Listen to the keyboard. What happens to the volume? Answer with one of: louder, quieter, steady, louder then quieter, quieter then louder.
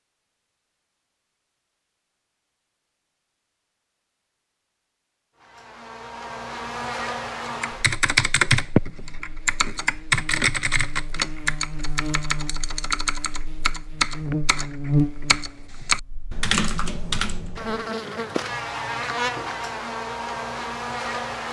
quieter then louder.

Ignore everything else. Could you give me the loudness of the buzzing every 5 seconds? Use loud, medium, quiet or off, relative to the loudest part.
off, medium, loud, loud, loud.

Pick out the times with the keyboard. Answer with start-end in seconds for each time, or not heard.
7.6-17.8.